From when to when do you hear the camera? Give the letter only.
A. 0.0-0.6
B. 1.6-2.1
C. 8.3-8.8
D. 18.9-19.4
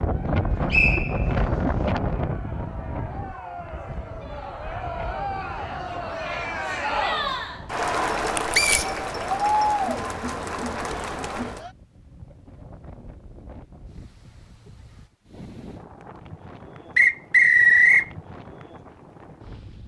C.